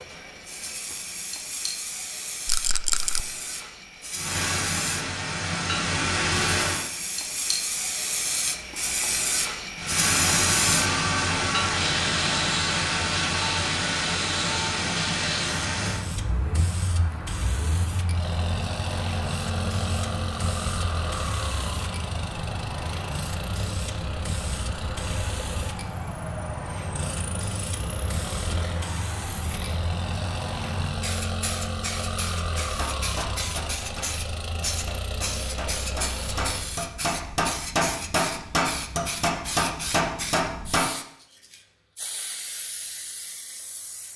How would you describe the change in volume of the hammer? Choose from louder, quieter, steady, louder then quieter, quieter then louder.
louder.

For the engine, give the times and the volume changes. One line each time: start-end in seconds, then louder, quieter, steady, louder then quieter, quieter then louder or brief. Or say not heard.
4.2-6.8 brief
9.8-36.7 quieter.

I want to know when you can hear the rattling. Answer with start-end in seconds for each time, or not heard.
2.5-3.2.